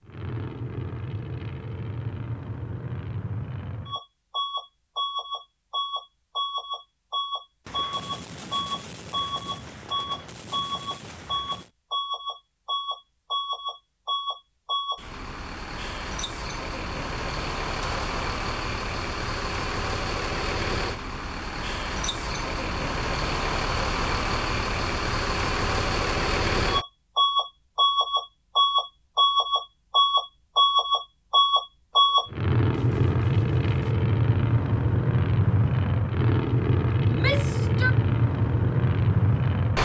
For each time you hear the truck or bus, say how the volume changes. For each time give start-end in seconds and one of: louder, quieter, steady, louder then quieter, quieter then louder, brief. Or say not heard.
0.1-39.8 louder.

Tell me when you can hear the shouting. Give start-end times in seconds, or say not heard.
37.0-38.0.